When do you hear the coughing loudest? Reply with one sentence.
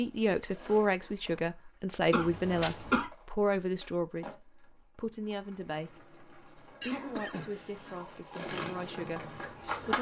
The volume of the coughing peaks at 3 seconds.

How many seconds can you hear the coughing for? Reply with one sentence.
You can hear the coughing for 2 seconds altogether.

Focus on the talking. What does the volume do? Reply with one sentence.
The volume of the talking goes down.